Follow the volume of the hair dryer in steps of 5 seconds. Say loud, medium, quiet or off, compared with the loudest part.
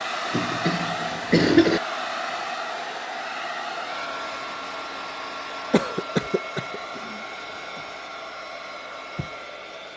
loud, medium.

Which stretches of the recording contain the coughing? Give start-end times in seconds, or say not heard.
0.3-1.8, 5.7-6.8.